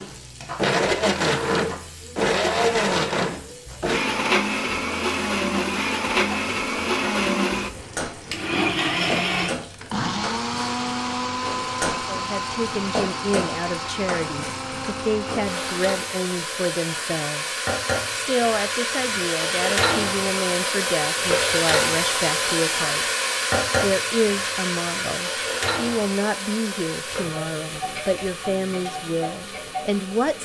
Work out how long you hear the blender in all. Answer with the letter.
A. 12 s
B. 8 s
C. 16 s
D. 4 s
C.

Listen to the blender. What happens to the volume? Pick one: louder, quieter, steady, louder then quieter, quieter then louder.
quieter.